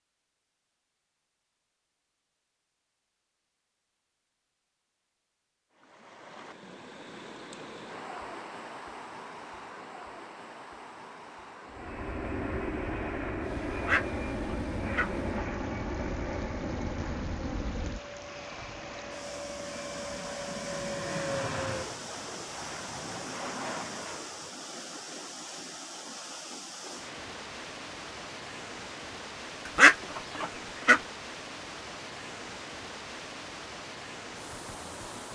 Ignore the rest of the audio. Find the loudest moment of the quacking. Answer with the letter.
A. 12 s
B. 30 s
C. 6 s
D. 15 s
B.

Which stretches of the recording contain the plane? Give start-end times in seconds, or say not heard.
11.7-24.5.